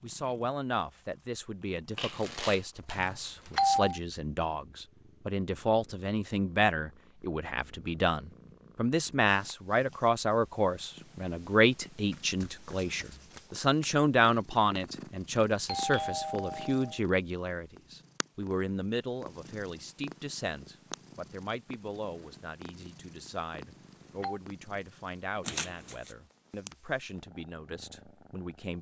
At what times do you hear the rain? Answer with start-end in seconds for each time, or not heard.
not heard.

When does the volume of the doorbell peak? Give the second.
4 s.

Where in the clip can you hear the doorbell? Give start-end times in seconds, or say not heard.
3.0-4.0, 15.7-17.0, 23.6-24.4.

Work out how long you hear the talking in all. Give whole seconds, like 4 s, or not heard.
29 s.